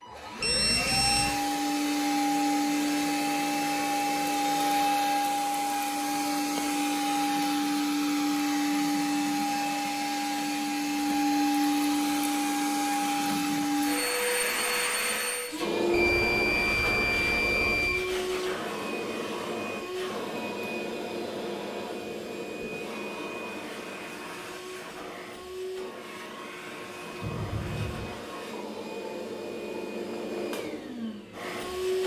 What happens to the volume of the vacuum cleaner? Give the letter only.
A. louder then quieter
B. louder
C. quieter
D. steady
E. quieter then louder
C.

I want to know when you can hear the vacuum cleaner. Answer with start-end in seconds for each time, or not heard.
0.0-32.0.